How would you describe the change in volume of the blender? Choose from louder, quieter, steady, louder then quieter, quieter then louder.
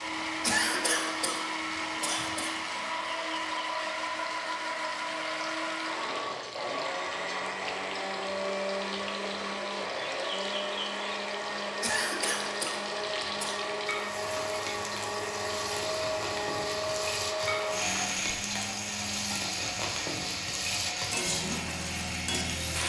steady.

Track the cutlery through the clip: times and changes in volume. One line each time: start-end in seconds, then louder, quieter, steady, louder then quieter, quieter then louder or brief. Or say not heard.
not heard.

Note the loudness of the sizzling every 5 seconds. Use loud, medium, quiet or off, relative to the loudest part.
medium, medium, medium, loud, loud.